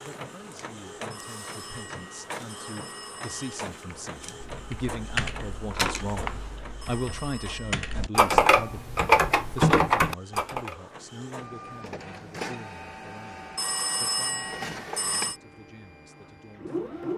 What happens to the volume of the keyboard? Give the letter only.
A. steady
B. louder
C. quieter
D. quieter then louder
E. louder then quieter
D.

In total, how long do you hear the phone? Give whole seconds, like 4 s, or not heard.
5 s.